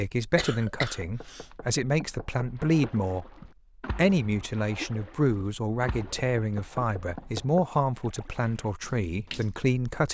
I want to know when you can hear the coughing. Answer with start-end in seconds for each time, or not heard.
0.3-1.6.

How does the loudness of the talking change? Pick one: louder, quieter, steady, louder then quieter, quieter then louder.
steady.